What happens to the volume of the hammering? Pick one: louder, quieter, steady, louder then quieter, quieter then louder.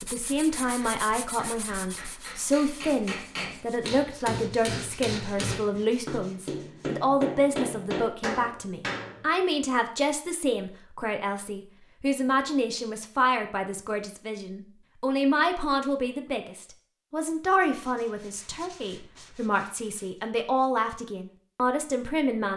louder.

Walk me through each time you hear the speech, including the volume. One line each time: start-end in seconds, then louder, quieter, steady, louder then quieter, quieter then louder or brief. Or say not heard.
0.0-22.5 steady.